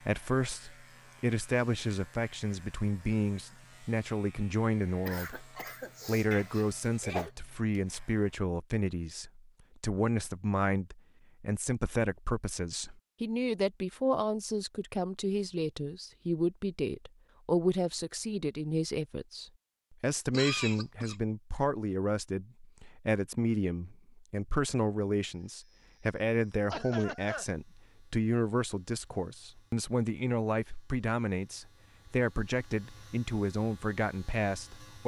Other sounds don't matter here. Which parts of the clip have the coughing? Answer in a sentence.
The coughing can be heard from 5.0 to 7.3 s, from 20.3 to 21.1 s and from 26.7 to 27.4 s.